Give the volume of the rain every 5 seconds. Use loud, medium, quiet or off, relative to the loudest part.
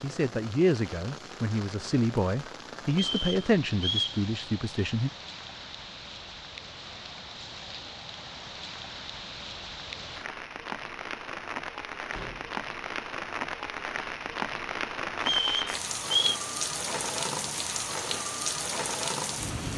medium, medium, loud, loud.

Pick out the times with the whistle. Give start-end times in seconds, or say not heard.
2.9-4.2, 15.2-16.4.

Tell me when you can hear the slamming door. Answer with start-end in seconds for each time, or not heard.
12.1-12.6.